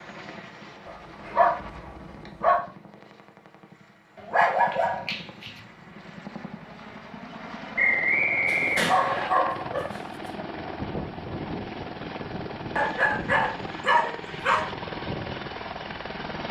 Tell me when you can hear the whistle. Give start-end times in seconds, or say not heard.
7.8-9.3.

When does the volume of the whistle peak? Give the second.
8 s.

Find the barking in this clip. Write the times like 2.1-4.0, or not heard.
0.8-2.6, 4.2-5.6, 8.4-10.4, 12.8-14.7.